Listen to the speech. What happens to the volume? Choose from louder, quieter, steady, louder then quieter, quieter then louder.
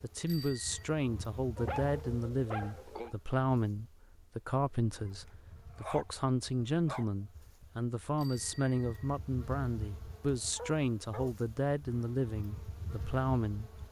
steady.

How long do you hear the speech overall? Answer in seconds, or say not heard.
14 s.